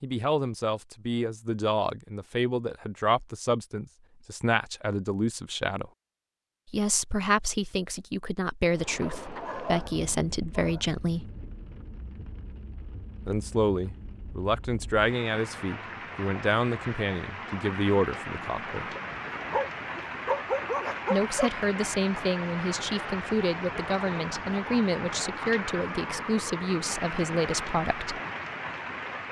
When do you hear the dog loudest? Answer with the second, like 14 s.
20 s.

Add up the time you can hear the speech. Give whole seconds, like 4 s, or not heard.
23 s.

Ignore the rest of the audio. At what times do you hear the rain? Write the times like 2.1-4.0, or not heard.
8.7-29.2.